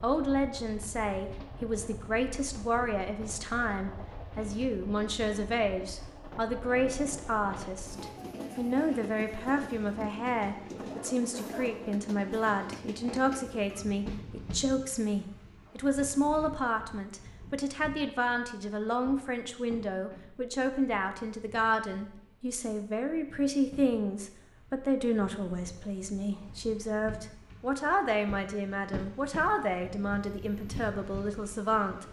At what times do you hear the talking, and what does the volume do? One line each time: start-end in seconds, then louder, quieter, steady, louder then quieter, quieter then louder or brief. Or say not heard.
0.0-32.0 steady.